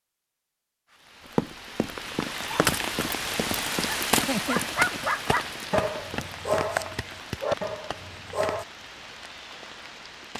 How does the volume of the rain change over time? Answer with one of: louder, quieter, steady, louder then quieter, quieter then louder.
quieter.